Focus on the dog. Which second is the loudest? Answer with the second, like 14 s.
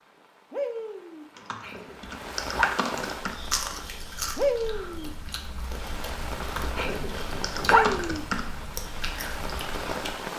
8 s.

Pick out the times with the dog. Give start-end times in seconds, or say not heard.
1.6-2.8, 6.8-8.2.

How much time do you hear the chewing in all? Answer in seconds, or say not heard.
7 s.